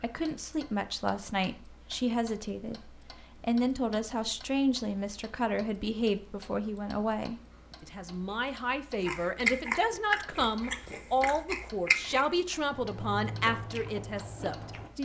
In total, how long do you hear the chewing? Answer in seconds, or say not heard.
6 s.